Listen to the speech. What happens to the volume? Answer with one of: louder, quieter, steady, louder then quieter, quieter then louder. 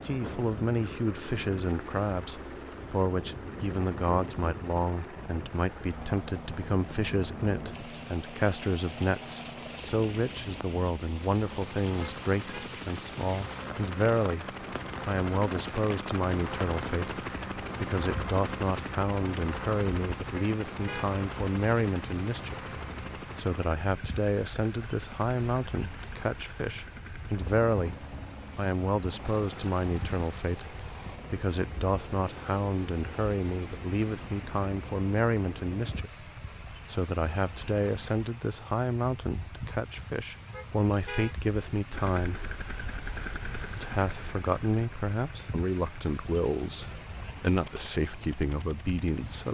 steady.